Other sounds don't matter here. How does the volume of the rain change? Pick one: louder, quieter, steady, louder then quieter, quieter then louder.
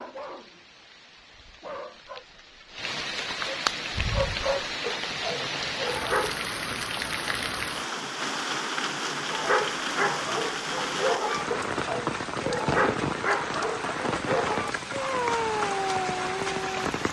louder.